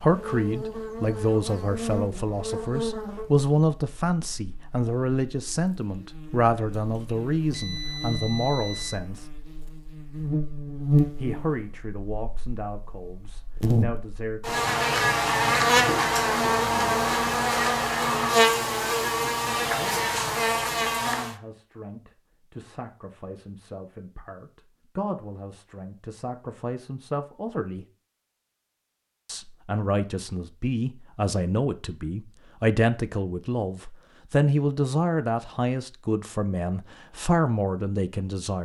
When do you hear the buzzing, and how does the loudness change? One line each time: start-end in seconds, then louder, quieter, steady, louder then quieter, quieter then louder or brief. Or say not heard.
0.0-21.4 quieter then louder.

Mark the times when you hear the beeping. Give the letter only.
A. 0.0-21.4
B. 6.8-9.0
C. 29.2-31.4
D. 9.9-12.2
B.